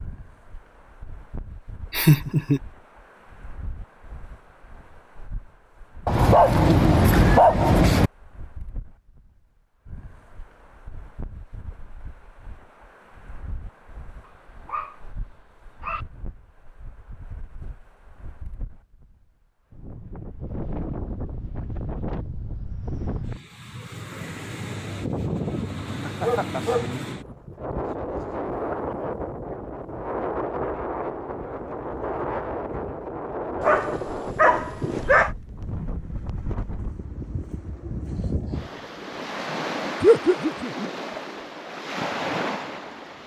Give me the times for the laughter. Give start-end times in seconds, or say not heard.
1.9-2.6, 25.9-26.8, 40.0-40.9.